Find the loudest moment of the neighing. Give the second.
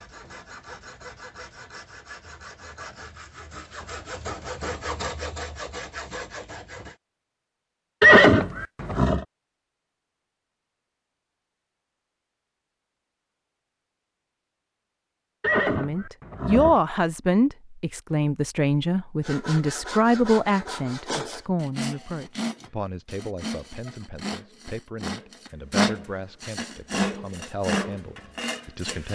8 s.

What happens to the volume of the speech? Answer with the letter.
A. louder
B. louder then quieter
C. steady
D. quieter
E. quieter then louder
D.